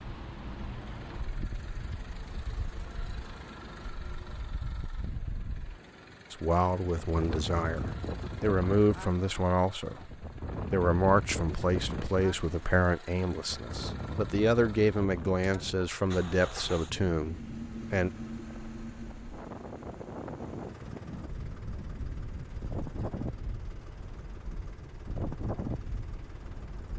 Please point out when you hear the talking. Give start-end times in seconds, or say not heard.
6.3-18.1.